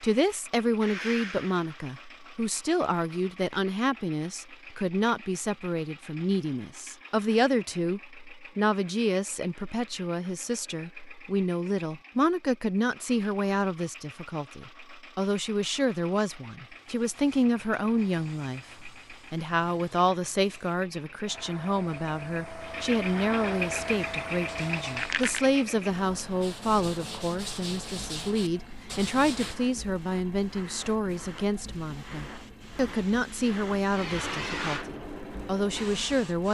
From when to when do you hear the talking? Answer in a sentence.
The talking can be heard from 0.0 to 36.4 s.